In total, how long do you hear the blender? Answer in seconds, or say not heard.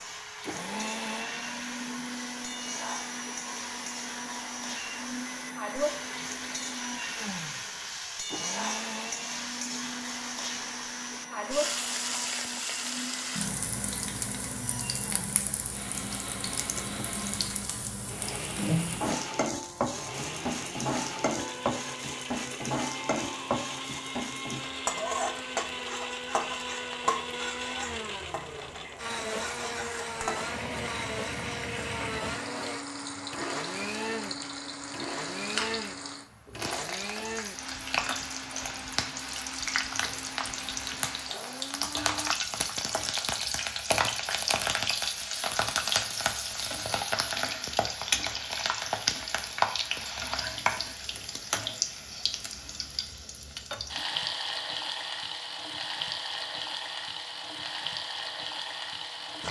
42 s.